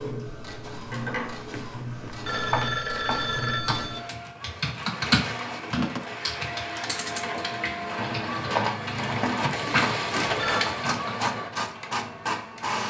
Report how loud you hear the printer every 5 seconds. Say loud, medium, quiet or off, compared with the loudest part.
medium, loud, loud.